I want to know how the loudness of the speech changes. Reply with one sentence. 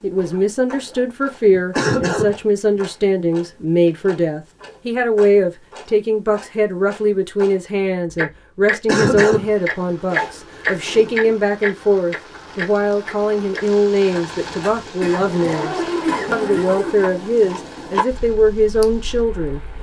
The loudness of the speech stays about the same.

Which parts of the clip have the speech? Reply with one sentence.
You can hear the speech from 0.0 to 19.6 s.